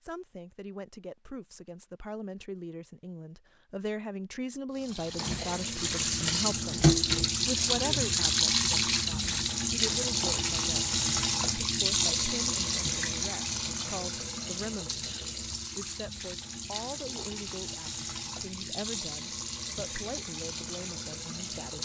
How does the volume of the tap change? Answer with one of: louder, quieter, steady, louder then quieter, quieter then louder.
quieter.